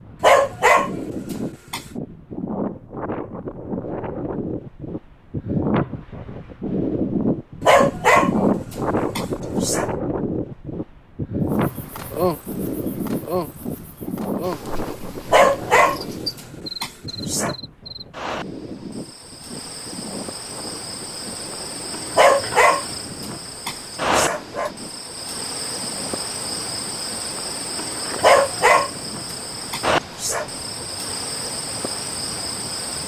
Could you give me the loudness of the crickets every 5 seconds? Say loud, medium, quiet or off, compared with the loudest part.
off, off, loud, medium, loud, loud, loud.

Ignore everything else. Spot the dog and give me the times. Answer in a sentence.
You can hear the dog from 0.2 to 1.8 s, from 7.6 to 9.9 s, from 15.3 to 17.6 s, from 22.1 to 24.7 s and from 28.2 to 30.4 s.